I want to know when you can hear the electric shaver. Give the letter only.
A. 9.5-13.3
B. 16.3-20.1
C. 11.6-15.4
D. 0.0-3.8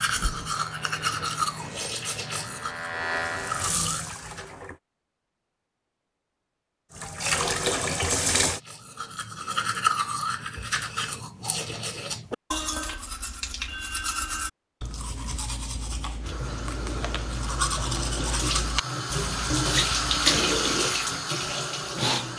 D.